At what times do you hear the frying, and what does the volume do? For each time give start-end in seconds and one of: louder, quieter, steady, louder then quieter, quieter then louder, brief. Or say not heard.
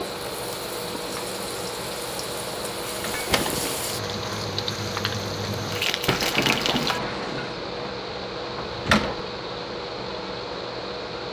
0.0-7.0 louder.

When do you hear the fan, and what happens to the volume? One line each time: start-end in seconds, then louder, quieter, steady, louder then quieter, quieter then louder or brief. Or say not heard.
0.0-11.2 steady.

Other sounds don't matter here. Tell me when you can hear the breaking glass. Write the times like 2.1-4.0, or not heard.
3.1-3.9, 6.0-8.0.